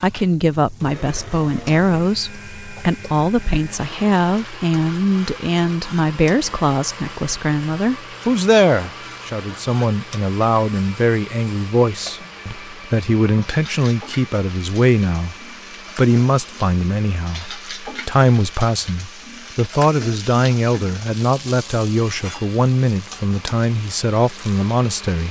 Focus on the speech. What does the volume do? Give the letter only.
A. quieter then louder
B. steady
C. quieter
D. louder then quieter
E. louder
B.